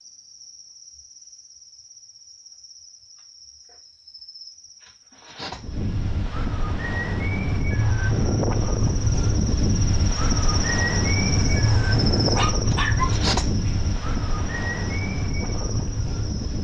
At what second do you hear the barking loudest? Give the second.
13 s.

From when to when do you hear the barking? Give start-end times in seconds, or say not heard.
11.2-13.1.